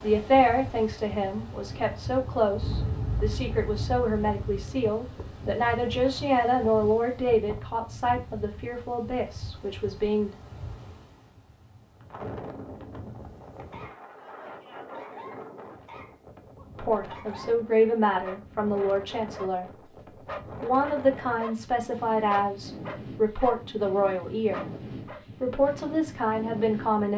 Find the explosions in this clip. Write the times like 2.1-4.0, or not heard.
2.6-4.5.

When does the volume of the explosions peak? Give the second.
3 s.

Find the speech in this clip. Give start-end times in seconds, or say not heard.
0.0-10.3, 16.8-19.7, 20.6-24.6, 25.4-27.1.